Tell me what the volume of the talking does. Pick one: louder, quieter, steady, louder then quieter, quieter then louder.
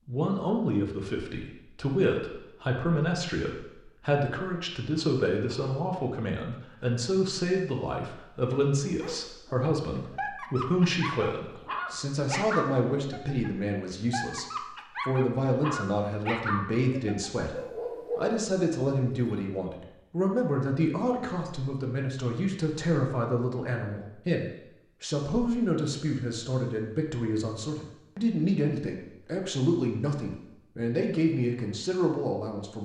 steady.